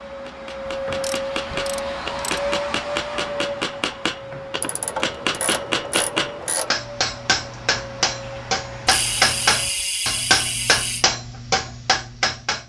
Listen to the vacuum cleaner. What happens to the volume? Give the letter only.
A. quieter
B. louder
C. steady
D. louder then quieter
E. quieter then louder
A.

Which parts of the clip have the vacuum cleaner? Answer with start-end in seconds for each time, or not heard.
0.0-9.9.